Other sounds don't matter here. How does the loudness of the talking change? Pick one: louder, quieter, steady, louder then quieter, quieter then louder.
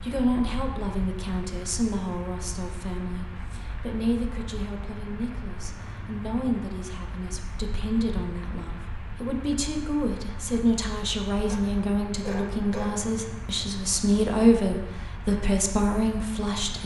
louder.